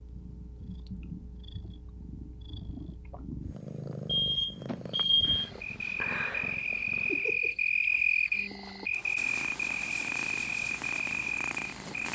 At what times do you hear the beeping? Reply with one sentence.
The beeping can be heard from 4.0 to 5.5 s.